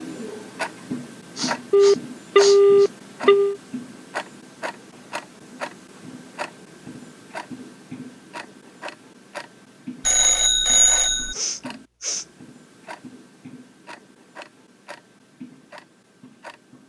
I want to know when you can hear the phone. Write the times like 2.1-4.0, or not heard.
1.7-3.5, 10.1-11.3.